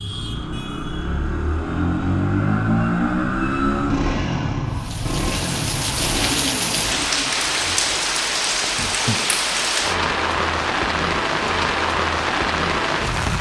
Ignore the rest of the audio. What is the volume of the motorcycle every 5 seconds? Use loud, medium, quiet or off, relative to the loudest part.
loud, medium, off.